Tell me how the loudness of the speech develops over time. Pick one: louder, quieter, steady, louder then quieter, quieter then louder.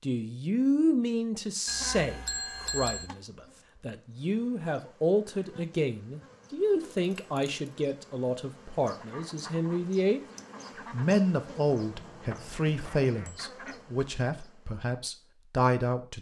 steady.